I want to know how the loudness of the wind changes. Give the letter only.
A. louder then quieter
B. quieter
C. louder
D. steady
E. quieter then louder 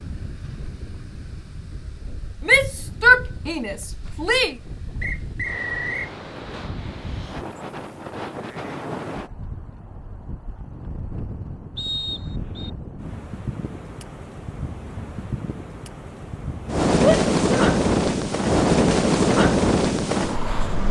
C.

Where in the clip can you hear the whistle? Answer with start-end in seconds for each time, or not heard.
5.0-6.1, 11.8-12.7.